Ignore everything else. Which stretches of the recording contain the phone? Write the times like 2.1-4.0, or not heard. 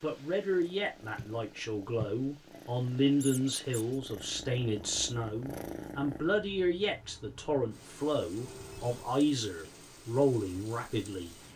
1.0-2.6, 8.4-9.2.